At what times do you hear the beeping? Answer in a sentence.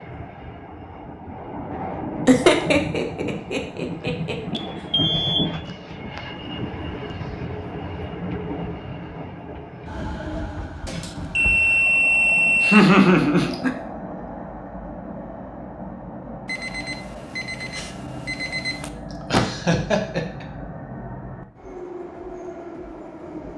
You can hear the beeping from 4.5 to 5.5 s, from 10.8 to 12.8 s and from 16.4 to 18.9 s.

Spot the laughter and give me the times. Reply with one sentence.
The laughter can be heard from 2.2 to 4.6 s, from 12.6 to 13.7 s and from 19.2 to 20.4 s.